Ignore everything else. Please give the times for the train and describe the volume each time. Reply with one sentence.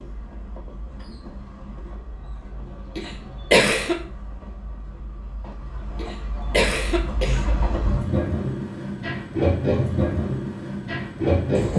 The train can be heard from 0.0 to 11.7 s, getting louder.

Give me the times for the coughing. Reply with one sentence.
The coughing can be heard from 3.0 to 4.0 s and from 6.0 to 7.5 s.